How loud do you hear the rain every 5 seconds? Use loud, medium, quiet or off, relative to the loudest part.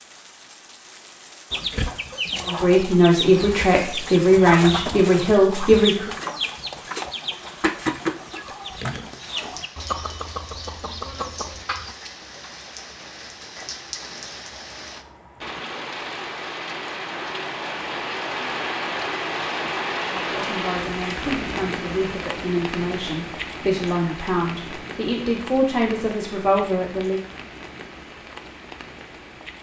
quiet, quiet, medium, loud, loud, medium.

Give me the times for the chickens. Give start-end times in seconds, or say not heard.
1.5-11.9.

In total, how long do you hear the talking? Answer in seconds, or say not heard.
11 s.